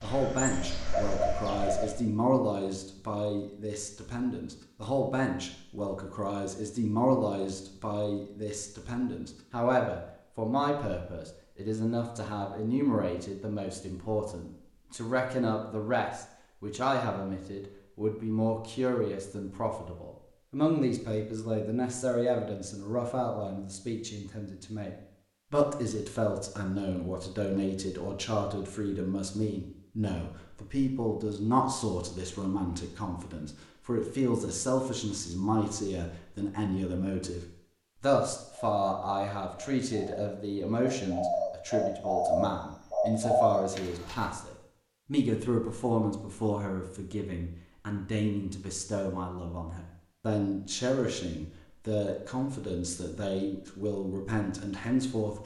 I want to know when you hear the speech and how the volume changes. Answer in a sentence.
You can hear the speech from 0.0 to 55.4 s, at a steady volume.